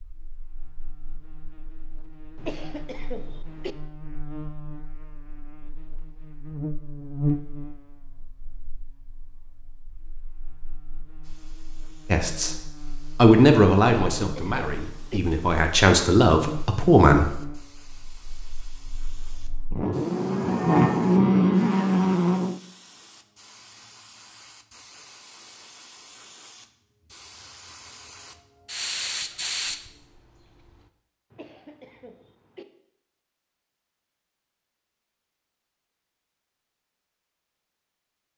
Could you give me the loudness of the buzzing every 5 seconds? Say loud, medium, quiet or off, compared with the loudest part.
quiet, quiet, quiet, quiet, loud, off, off, off.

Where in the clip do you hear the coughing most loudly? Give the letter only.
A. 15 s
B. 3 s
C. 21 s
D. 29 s
B.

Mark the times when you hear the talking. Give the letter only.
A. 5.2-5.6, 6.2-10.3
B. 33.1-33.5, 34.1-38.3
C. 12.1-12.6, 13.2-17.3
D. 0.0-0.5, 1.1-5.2
C.